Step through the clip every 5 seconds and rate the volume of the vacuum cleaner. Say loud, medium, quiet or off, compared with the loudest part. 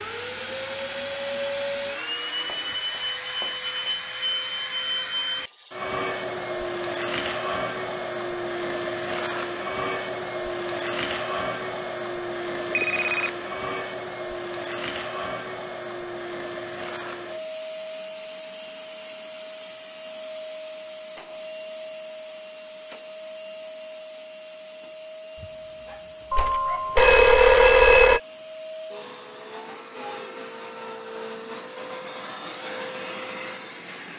loud, loud, loud, medium, medium, medium, medium.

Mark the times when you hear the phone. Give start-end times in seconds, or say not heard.
2.5-4.1, 12.7-13.3, 26.3-28.2.